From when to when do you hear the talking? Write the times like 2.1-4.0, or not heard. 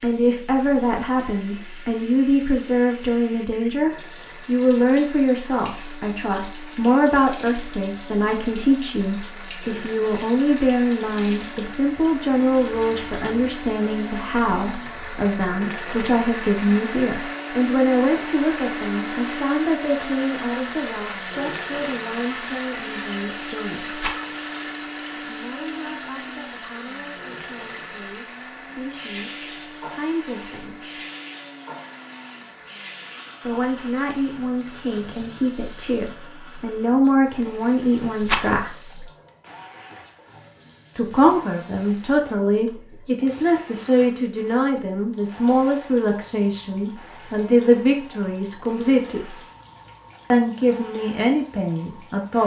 0.0-24.1, 25.2-31.0, 33.4-39.0, 41.0-49.4, 50.3-52.4.